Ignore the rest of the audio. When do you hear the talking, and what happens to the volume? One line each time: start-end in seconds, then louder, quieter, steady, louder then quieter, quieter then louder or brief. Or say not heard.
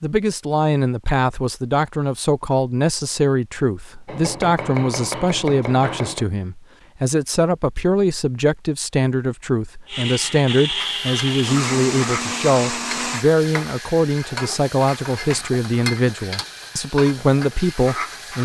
0.0-18.4 steady.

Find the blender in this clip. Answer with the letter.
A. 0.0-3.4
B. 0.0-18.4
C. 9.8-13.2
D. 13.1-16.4
C.